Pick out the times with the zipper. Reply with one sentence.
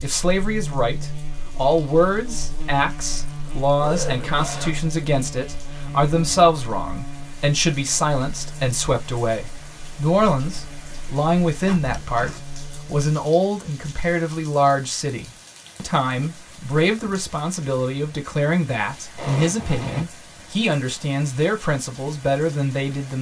You can hear the zipper from 3.1 to 4.8 s, from 11.7 to 12.4 s and from 19.1 to 20.1 s.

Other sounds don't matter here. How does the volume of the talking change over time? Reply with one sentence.
The volume of the talking stays about the same.